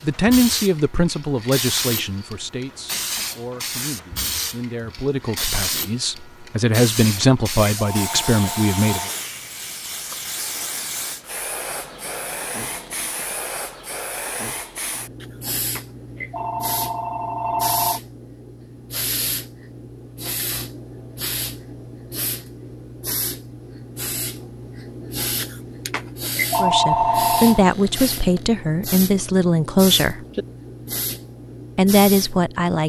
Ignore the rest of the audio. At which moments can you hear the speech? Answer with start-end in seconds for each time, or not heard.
0.0-9.1, 26.6-30.2, 31.8-32.8.